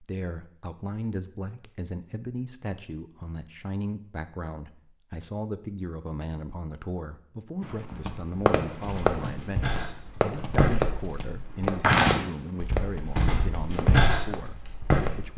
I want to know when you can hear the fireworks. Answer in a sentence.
You can hear the fireworks from 7.6 to 15.3 s.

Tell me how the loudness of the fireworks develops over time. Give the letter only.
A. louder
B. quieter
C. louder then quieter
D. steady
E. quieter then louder
B.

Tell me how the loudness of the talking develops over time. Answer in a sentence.
The loudness of the talking stays about the same.